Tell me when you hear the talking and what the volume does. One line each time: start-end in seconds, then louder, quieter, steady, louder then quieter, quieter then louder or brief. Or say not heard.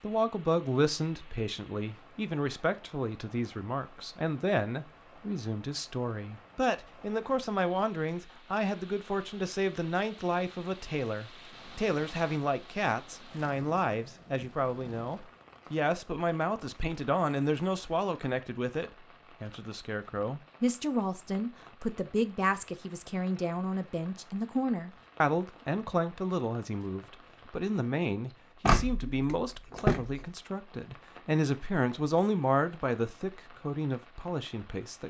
0.0-35.0 steady.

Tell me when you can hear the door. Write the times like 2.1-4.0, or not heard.
28.6-30.2.